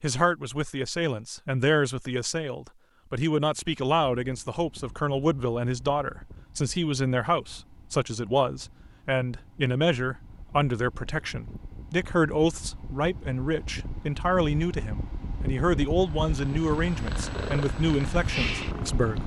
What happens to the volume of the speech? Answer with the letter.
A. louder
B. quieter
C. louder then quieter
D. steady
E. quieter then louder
D.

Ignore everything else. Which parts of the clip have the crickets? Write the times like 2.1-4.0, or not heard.
not heard.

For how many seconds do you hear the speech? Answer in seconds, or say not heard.
19 s.